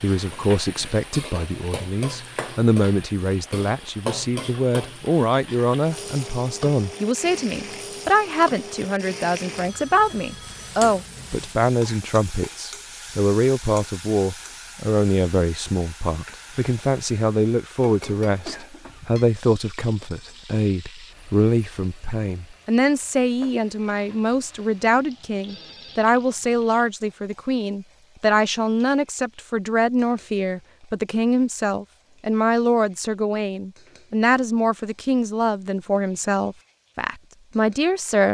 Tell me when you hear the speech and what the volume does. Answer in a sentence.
You can hear the speech from 0.0 to 38.2 s, at a steady volume.